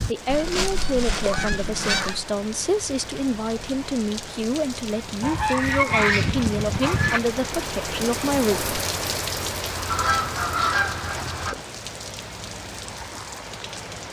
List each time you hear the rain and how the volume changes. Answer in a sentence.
The rain can be heard from 0.0 to 14.0 s, getting louder then quieter.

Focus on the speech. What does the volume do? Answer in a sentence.
The loudness of the speech stays about the same.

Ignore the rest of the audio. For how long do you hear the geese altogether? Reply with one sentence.
You can hear the geese for 6 seconds altogether.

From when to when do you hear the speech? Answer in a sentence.
The speech can be heard from 0.1 to 8.7 s.